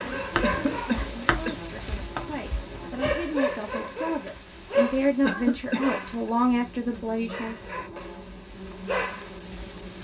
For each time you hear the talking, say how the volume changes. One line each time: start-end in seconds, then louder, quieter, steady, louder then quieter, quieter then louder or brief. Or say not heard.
0.0-7.5 louder.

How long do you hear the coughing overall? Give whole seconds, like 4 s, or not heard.
2 s.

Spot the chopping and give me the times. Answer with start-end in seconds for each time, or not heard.
0.3-3.1.